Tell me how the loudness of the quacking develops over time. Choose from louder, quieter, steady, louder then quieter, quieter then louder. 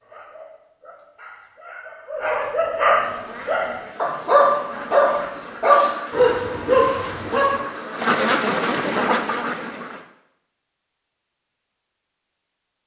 louder.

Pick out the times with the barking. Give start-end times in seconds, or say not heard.
0.0-7.5.